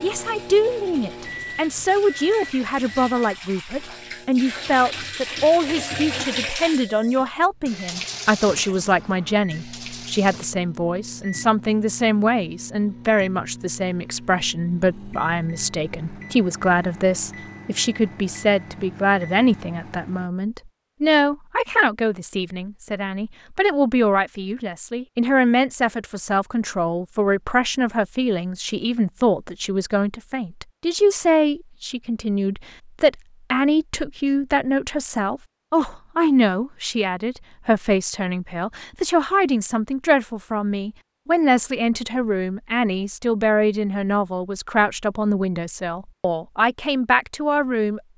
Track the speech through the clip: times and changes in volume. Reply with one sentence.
You can hear the speech from 0.0 to 48.0 s, at a steady volume.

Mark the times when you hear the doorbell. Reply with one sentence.
You can't hear the doorbell here.